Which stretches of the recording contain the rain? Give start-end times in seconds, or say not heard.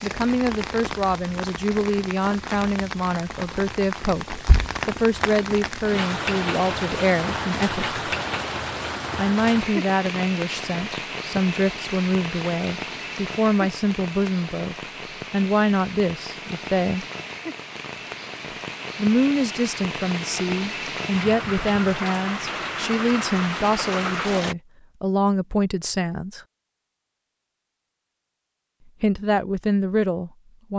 0.0-24.6.